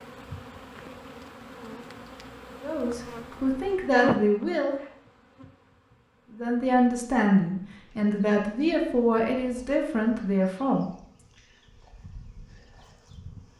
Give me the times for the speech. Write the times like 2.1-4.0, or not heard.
2.6-4.8, 6.3-10.9.